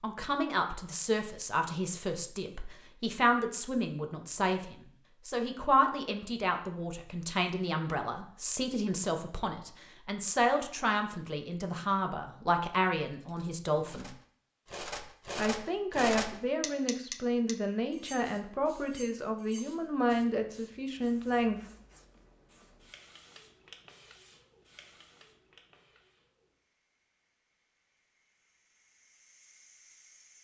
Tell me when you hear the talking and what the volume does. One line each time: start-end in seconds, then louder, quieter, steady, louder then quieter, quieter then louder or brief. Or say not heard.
0.0-14.1 steady
15.3-21.6 steady.